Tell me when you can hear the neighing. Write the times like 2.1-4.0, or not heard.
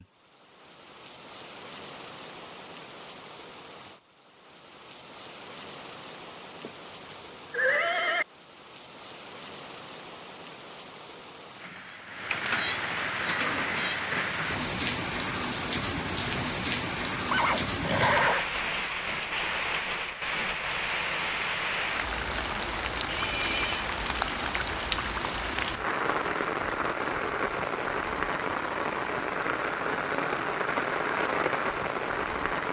6.6-8.2, 17.3-18.4, 23.1-23.9.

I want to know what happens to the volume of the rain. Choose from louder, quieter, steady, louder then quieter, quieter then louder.
louder.